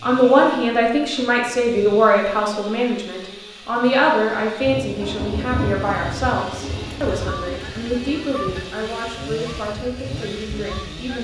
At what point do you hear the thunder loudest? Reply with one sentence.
The volume of the thunder peaks at 6 seconds.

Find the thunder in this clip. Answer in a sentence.
The thunder can be heard from 4.6 to 8.7 s.